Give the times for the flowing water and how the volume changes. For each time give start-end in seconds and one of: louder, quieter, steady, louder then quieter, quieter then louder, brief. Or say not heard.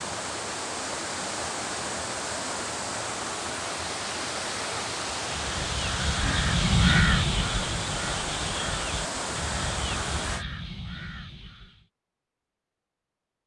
0.0-10.4 steady.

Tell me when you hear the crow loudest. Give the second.
7 s.